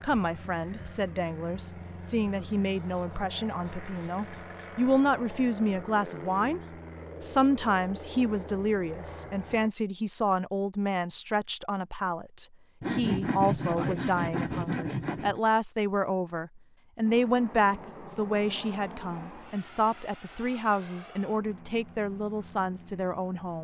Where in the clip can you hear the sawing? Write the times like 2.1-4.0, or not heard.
2.7-4.8, 12.8-15.4.